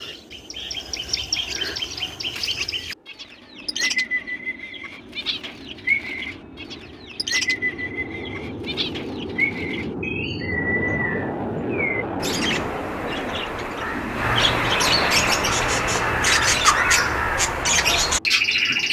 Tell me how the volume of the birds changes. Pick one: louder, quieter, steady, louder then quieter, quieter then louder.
louder.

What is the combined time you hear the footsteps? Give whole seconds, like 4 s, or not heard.
not heard.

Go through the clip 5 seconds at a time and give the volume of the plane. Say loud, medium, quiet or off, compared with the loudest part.
quiet, medium, loud, medium.